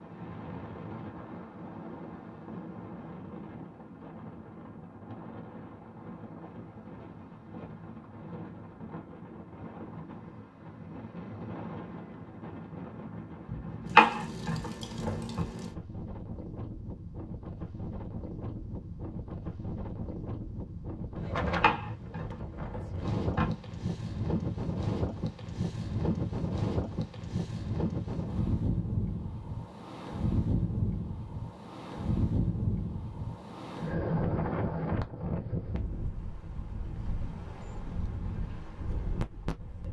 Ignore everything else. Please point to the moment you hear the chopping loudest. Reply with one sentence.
The loudest moment of the chopping is at 14 seconds.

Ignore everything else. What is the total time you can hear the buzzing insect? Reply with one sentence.
The buzzing insect can't be heard in this clip.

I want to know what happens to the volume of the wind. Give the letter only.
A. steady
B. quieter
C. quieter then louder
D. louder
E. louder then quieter
D.